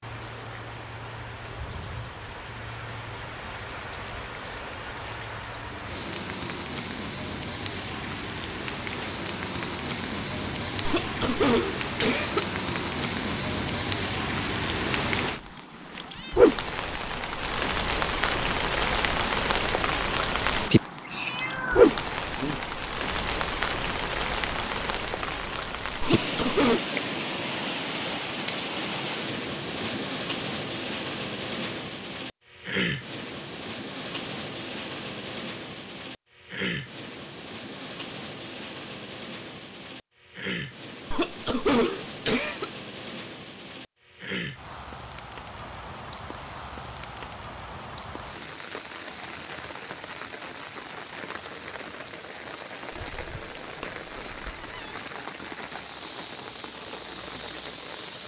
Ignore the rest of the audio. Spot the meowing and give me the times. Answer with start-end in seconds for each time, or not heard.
15.3-16.4, 20.6-22.6, 52.9-55.0.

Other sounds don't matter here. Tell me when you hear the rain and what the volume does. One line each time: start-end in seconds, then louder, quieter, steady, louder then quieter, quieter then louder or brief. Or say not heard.
0.0-58.2 louder then quieter.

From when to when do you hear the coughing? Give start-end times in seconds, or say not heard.
10.8-12.4, 26.0-26.8, 41.1-42.7.